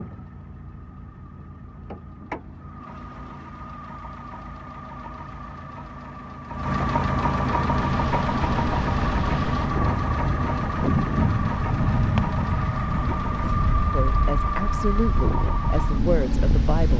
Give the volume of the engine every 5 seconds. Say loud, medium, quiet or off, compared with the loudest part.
quiet, loud, loud, loud.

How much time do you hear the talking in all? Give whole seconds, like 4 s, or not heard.
3 s.